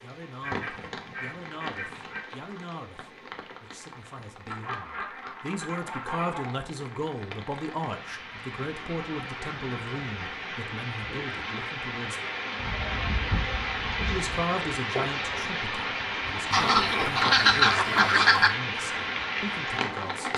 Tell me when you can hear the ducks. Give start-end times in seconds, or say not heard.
0.4-2.2, 4.5-6.5, 8.6-10.6, 12.6-14.4, 16.5-18.5.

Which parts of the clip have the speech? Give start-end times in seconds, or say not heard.
0.0-12.2, 14.1-20.3.